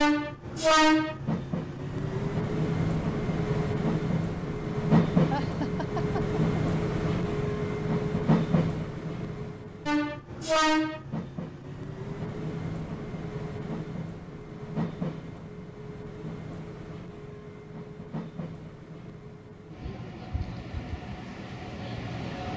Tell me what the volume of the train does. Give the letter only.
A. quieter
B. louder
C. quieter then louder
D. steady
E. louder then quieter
A.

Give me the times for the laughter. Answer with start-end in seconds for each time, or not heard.
5.3-6.6.